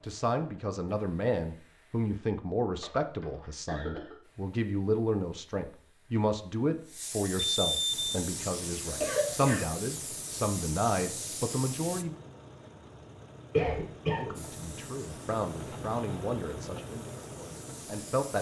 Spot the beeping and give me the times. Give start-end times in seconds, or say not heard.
7.3-8.2.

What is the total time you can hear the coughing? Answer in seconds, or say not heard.
3 s.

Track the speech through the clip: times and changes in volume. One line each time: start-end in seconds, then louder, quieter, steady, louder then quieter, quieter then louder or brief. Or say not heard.
0.0-12.2 steady
14.2-18.3 louder then quieter.